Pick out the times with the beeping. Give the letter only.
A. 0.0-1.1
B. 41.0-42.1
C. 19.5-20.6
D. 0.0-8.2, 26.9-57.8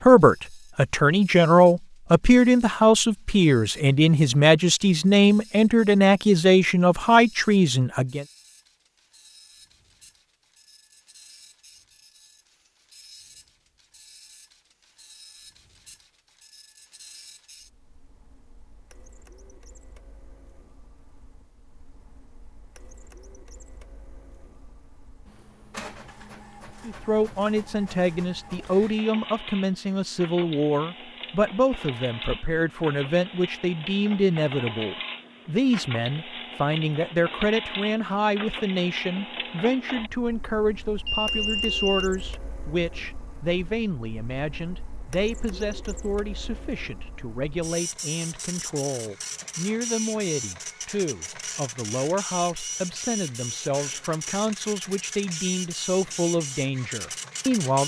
B.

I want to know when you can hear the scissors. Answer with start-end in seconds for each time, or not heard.
not heard.